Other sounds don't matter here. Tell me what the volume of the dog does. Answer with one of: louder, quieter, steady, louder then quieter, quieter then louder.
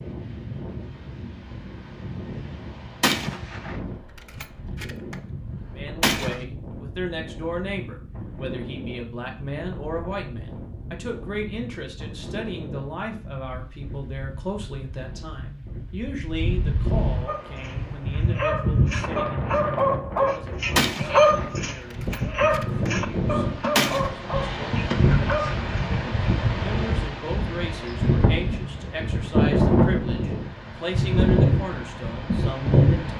louder then quieter.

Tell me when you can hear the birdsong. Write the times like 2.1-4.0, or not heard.
not heard.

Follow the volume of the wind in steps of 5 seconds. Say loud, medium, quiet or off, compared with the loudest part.
quiet, quiet, quiet, medium, medium, loud, loud.